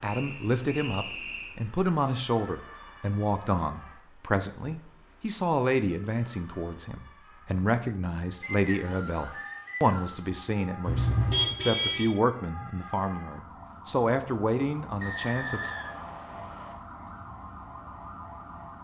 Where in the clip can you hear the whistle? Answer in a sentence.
The whistle can be heard from 0.1 to 1.6 s, from 8.4 to 10.2 s and from 15.0 to 16.8 s.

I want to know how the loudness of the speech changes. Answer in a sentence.
The volume of the speech stays about the same.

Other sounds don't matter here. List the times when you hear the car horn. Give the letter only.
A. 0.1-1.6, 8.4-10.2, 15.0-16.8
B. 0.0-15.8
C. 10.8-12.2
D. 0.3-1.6
C.